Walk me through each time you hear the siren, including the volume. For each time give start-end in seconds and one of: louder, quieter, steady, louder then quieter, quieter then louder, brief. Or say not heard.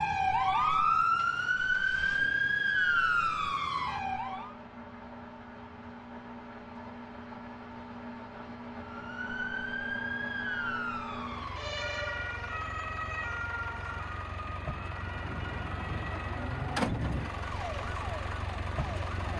0.0-4.5 quieter
8.8-19.1 quieter.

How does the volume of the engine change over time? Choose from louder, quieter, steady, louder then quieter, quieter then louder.
louder.